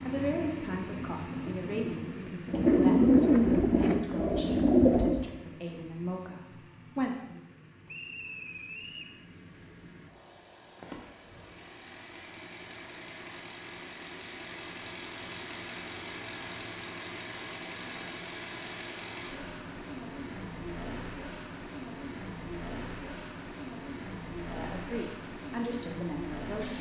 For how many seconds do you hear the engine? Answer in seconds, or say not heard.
27 s.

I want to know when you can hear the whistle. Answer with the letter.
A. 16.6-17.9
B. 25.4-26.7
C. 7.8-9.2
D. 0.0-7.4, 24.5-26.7
C.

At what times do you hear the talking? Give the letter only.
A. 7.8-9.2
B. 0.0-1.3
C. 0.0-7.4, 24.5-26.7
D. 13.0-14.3
C.